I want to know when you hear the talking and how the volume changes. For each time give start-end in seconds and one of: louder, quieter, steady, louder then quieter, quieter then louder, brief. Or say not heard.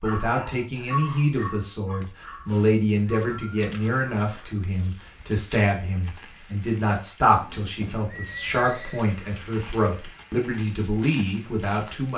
0.0-12.1 steady.